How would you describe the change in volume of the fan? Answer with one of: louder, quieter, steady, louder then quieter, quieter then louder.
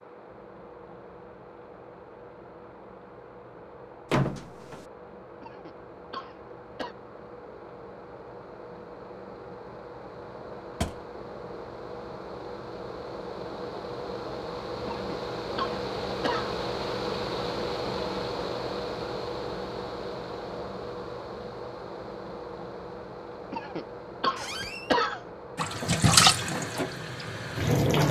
louder then quieter.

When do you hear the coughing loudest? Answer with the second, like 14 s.
25 s.